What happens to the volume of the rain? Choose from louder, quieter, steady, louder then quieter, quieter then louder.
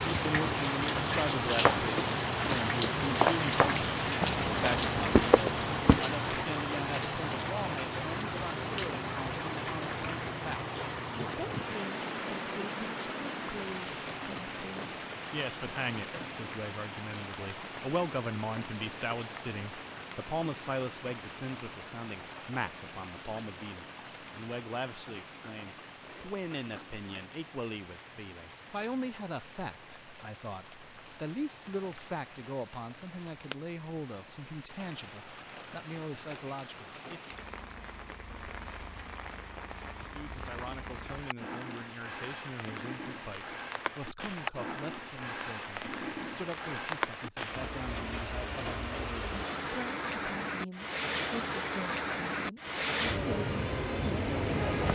quieter then louder.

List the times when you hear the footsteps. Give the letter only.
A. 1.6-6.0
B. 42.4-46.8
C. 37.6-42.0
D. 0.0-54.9
A.